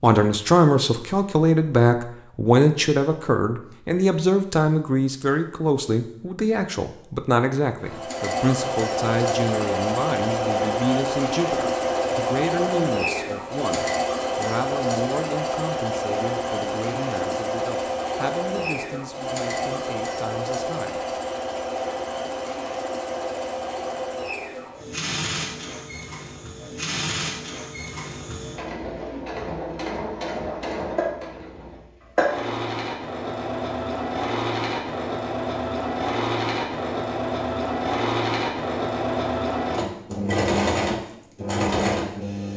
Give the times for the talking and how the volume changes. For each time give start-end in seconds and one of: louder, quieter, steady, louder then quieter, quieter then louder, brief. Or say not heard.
0.0-21.1 quieter.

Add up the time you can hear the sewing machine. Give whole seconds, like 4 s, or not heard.
35 s.